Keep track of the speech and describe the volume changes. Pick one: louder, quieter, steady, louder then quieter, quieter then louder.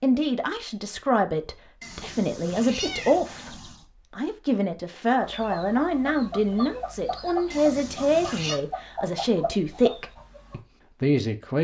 steady.